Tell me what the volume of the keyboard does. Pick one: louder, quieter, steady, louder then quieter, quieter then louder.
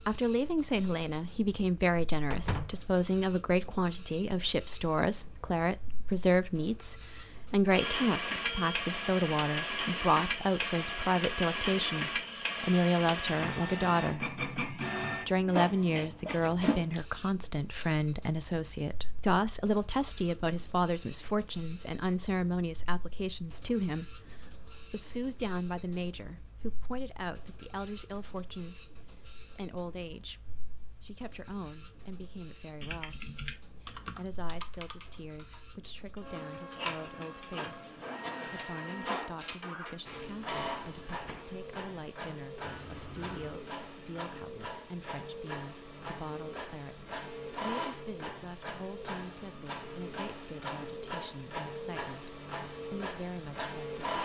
quieter.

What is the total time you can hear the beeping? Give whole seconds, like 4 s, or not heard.
2 s.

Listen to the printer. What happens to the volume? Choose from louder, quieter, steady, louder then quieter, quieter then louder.
quieter then louder.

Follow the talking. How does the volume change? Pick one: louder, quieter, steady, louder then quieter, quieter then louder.
quieter.